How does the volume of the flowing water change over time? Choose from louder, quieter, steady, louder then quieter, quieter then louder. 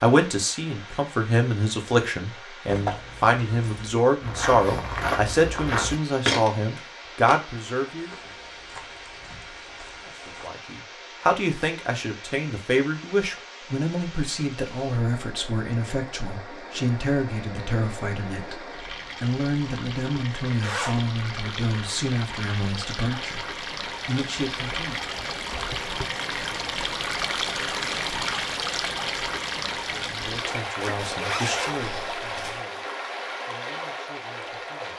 louder.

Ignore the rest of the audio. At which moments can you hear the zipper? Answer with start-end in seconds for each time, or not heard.
2.6-4.0, 20.4-21.0, 30.8-32.6.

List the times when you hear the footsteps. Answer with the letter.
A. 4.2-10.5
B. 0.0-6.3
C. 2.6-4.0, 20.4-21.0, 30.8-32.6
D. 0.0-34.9
A.